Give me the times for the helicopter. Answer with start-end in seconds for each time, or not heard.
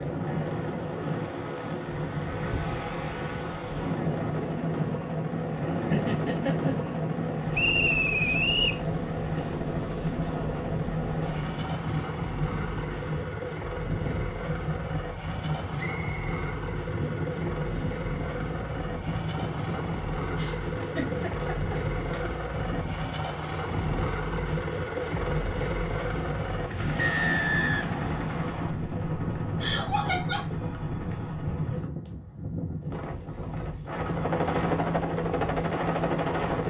0.0-31.9, 34.0-36.6.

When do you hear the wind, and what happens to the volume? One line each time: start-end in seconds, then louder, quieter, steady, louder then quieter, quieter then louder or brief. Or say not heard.
0.0-36.6 steady.